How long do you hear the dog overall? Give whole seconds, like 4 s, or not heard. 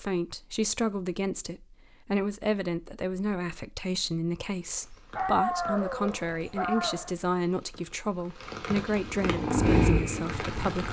2 s.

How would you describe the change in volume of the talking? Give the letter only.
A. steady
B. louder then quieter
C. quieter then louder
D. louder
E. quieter
A.